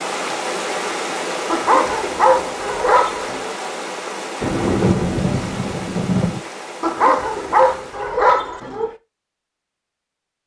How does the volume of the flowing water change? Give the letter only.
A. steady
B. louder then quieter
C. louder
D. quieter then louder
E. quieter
E.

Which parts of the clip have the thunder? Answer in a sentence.
The thunder can be heard from 4.4 to 6.4 s.